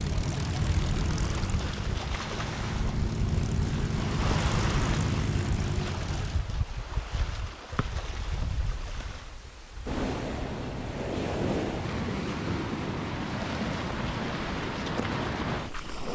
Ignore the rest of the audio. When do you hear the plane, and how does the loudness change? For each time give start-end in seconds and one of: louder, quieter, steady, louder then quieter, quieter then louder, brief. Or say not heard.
0.0-6.4 quieter then louder.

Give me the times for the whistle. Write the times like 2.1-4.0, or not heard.
7.8-8.4.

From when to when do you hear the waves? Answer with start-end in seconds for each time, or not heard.
0.2-16.1.